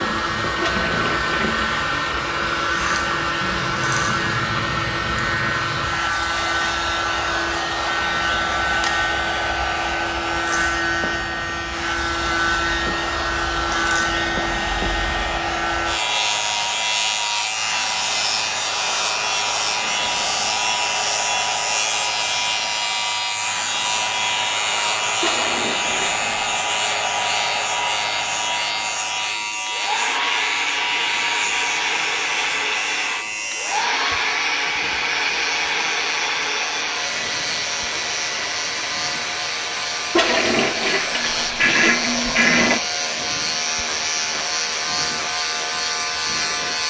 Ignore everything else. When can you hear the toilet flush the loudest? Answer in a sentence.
The loudest moment of the toilet flush is at 42 seconds.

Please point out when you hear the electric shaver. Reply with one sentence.
You can hear the electric shaver from 0.0 to 46.8 s.